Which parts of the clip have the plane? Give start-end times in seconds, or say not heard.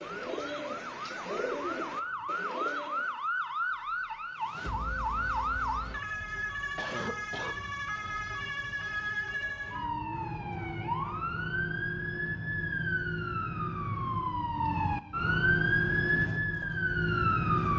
not heard.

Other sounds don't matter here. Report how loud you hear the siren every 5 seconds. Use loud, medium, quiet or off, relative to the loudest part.
medium, medium, medium, loud.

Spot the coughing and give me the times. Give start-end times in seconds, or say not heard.
6.8-7.6.